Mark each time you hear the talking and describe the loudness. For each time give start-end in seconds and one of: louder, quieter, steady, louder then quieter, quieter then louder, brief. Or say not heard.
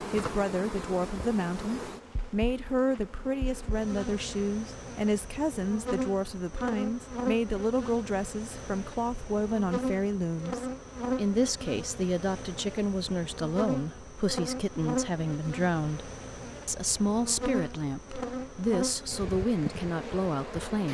0.0-20.8 steady.